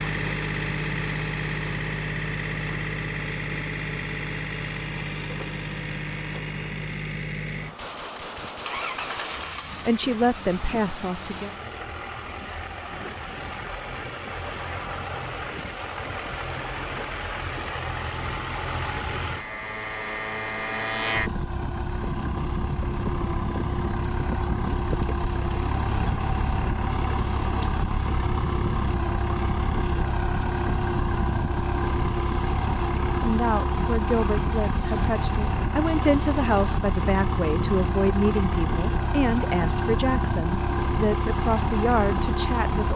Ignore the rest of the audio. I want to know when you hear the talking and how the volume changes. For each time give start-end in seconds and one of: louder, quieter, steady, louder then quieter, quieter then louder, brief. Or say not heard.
9.8-11.5 brief
33.0-42.9 steady.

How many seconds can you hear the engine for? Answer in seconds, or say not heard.
43 s.